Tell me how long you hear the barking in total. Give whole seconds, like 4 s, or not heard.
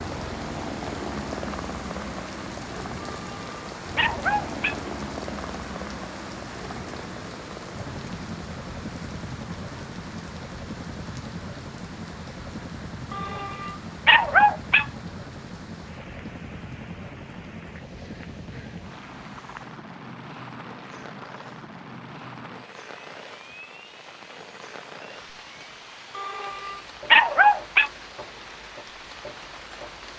5 s.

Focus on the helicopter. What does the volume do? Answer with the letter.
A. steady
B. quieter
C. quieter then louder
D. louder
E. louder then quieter
B.